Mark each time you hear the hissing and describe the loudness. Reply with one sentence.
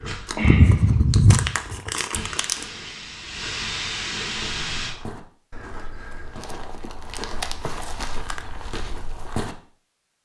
You can hear the hissing from 0.0 to 5.0 s, getting quieter then louder.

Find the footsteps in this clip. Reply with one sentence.
The footsteps can be heard from 4.3 to 9.6 s.